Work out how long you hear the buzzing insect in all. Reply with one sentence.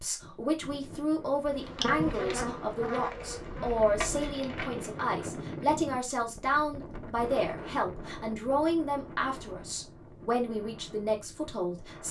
You can hear the buzzing insect for 4 seconds altogether.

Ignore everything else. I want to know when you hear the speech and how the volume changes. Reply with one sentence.
The speech can be heard from 0.0 to 12.0 s, at a steady volume.